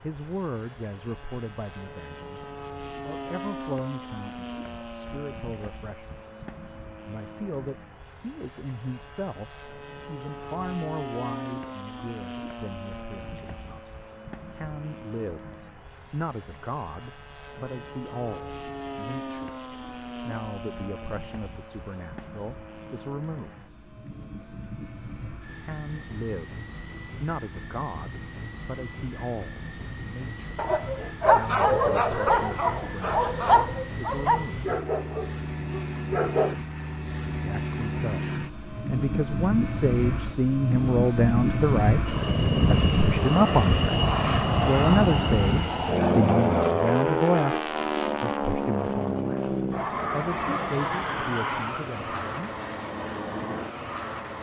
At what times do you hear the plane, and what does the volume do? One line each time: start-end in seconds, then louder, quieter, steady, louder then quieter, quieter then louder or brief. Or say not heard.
0.0-54.3 louder.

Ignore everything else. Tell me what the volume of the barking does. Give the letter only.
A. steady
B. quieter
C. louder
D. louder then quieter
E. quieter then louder
B.